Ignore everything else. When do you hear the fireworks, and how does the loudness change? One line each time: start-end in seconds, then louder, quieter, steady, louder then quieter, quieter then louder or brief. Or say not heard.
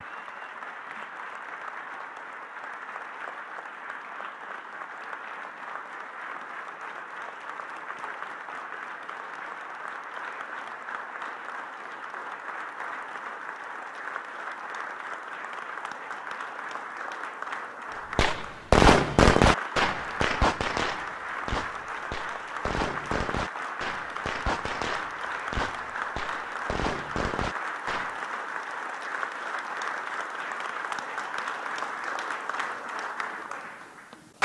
18.1-28.1 quieter.